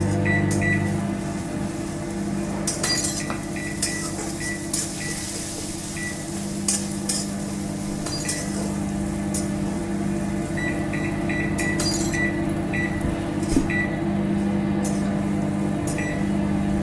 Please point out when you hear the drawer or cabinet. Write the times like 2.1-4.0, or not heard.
2.2-3.5, 13.1-13.8.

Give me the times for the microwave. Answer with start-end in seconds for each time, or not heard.
0.0-16.7.